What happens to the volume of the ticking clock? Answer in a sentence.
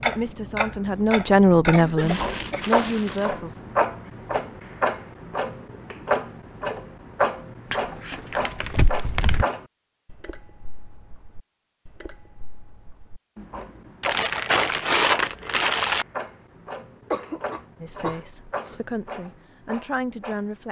The volume of the ticking clock goes down.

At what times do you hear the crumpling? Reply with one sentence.
You can hear the crumpling from 2.0 to 3.3 s, from 7.7 to 9.4 s and from 14.0 to 16.1 s.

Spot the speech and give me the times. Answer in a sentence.
The speech can be heard from 0.1 to 3.5 s and from 17.8 to 20.6 s.